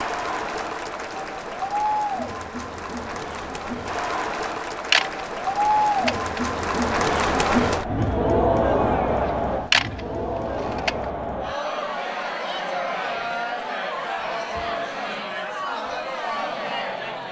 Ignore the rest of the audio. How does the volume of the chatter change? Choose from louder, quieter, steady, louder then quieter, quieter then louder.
louder then quieter.